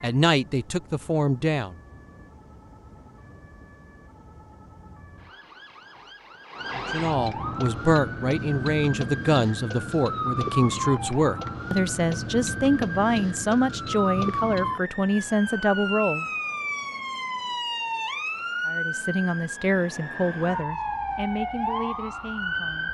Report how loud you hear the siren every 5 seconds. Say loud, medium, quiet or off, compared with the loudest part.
quiet, loud, loud, loud, loud.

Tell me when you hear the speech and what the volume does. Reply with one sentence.
The speech can be heard briefly from 0.0 to 1.8 s; from 6.8 to 16.2 s, at a steady volume; and from 18.6 to 22.9 s, getting quieter.